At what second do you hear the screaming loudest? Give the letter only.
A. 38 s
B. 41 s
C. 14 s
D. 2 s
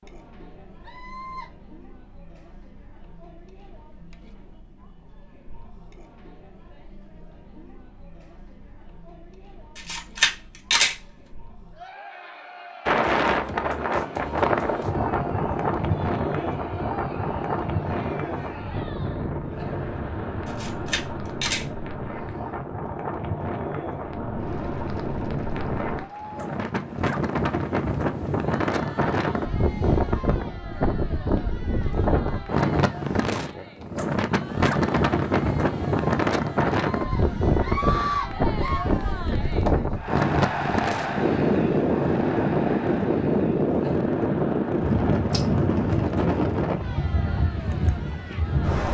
A.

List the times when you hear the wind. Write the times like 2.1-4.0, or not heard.
12.8-48.8.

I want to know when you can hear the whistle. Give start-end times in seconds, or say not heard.
not heard.